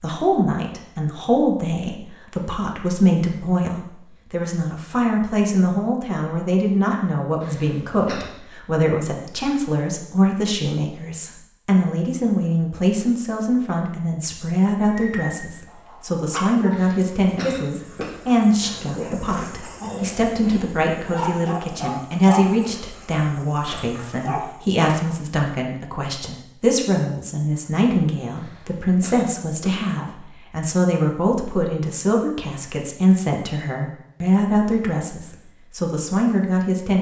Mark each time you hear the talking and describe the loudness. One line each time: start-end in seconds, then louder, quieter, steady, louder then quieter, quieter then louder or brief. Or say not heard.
0.0-36.9 steady.